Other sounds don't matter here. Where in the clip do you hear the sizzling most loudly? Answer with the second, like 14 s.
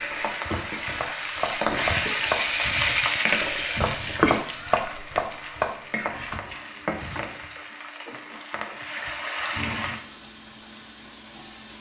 3 s.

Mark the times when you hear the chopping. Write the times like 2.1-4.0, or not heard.
0.0-7.3.